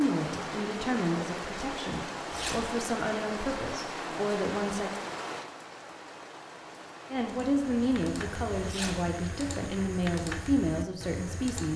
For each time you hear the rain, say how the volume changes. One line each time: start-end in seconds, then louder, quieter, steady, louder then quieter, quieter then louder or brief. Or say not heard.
0.0-9.8 quieter.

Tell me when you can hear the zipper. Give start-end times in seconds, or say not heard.
2.3-2.7, 8.7-9.1.